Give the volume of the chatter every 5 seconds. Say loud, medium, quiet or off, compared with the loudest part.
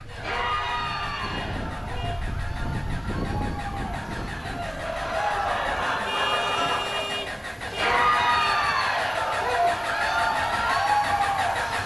medium, loud, loud.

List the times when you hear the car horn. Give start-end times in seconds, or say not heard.
0.4-2.2, 6.0-8.6.